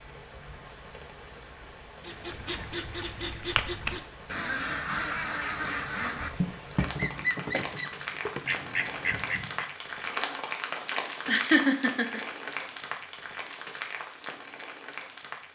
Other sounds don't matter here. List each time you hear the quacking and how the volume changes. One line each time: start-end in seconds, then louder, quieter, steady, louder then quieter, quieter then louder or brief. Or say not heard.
2.0-9.7 steady.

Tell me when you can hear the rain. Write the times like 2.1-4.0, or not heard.
0.0-15.4.